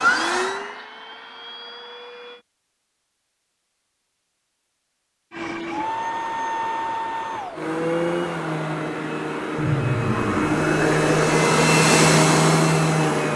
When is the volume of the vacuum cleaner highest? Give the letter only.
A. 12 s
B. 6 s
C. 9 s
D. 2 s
A.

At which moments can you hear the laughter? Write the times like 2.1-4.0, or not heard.
9.6-11.2.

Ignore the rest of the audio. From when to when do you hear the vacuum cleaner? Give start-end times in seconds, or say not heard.
0.0-2.5, 5.3-13.3.